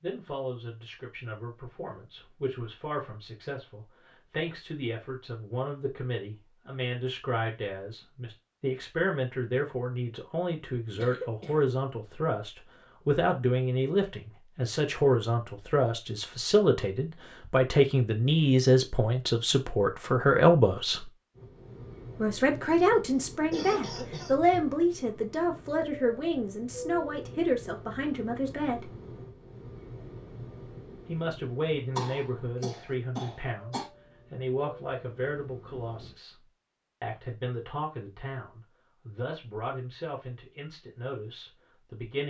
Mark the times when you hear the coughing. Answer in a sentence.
You can hear the coughing from 10.9 to 11.7 s, from 23.3 to 24.4 s and from 31.9 to 33.9 s.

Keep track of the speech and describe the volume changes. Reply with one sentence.
The loudness of the speech goes up, then down.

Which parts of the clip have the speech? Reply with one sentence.
The speech can be heard from 0.0 to 21.1 s, from 22.2 to 28.9 s and from 31.1 to 42.2 s.